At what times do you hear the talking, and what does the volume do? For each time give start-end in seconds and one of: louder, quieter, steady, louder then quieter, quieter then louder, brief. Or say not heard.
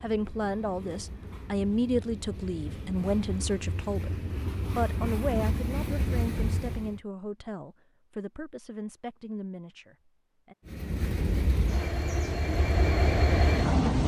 0.0-10.6 quieter.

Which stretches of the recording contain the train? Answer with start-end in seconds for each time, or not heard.
0.0-7.0, 10.7-14.0.